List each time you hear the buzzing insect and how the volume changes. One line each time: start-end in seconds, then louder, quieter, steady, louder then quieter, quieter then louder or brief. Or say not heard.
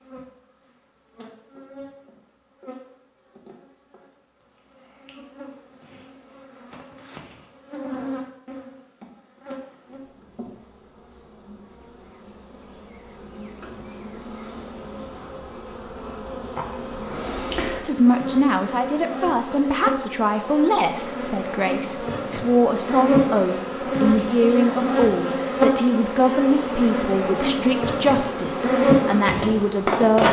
0.0-30.2 louder.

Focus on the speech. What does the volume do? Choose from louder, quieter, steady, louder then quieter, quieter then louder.
steady.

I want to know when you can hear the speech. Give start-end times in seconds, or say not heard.
17.8-30.2.